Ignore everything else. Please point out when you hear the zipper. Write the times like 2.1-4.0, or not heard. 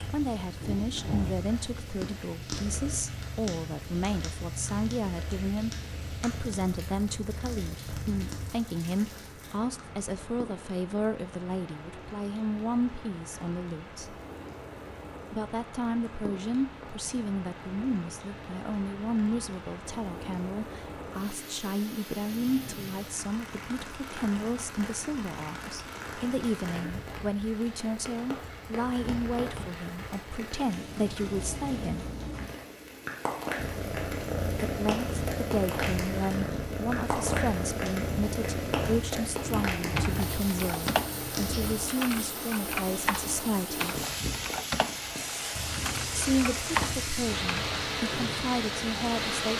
not heard.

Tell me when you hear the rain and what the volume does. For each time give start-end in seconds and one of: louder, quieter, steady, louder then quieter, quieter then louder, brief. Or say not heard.
0.0-49.5 louder.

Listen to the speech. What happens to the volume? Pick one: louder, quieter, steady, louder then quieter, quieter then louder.
steady.